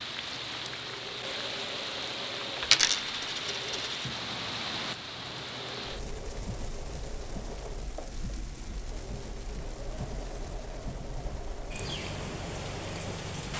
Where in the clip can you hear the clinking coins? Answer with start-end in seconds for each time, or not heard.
2.6-4.0.